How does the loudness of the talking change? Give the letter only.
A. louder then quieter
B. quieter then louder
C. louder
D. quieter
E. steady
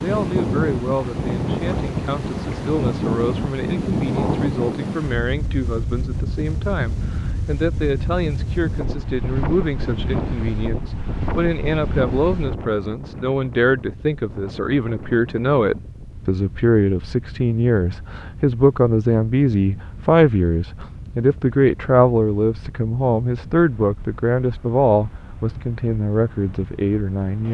C.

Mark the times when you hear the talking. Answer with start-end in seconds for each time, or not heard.
0.0-27.4.